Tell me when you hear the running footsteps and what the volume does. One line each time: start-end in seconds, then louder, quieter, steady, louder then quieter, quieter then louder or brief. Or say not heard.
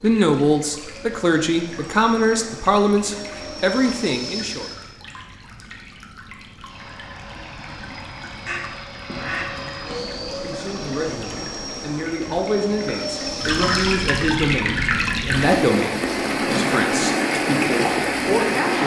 not heard.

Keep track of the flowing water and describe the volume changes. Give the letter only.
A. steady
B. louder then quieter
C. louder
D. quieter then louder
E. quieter
C.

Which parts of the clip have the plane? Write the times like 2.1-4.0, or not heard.
0.0-4.9, 6.6-14.2.